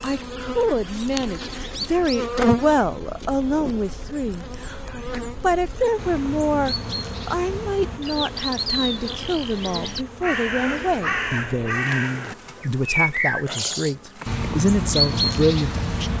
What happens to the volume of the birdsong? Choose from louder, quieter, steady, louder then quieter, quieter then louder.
louder.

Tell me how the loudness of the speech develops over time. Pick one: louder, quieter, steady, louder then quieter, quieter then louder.
steady.